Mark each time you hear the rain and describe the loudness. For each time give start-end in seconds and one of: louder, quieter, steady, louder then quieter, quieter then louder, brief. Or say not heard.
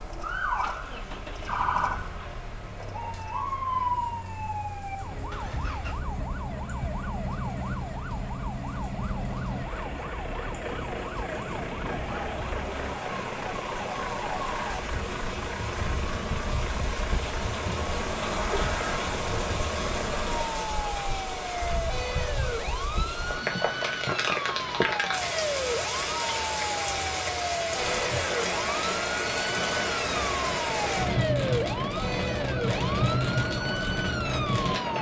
0.0-34.9 louder.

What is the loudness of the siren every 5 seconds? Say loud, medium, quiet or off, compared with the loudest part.
loud, medium, medium, medium, loud, loud, loud.